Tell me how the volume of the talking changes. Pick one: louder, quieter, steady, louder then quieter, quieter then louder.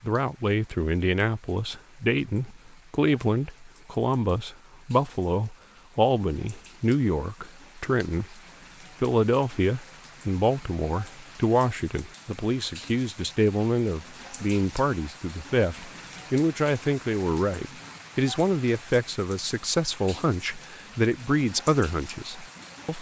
steady.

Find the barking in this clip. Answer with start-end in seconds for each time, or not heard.
not heard.